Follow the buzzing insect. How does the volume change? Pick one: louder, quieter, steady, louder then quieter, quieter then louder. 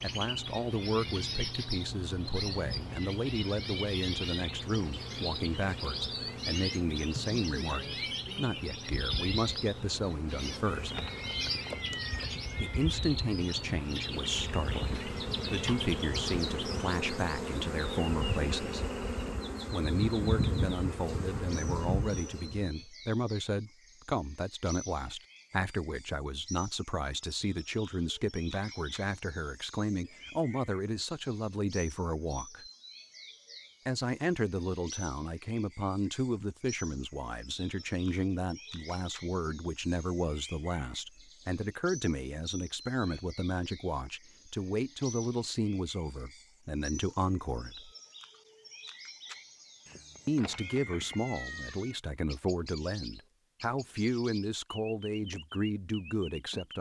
louder.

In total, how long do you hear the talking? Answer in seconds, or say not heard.
51 s.